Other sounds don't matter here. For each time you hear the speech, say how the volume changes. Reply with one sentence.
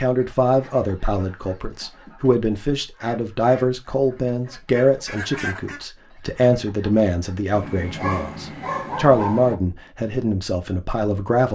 The speech can be heard from 0.0 to 11.5 s, at a steady volume.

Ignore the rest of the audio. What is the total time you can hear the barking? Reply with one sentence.
You can hear the barking for 2 seconds altogether.